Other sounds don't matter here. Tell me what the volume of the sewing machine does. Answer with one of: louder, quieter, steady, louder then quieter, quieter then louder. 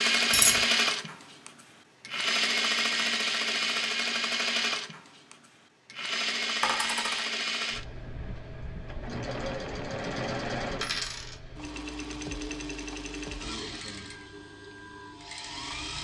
quieter.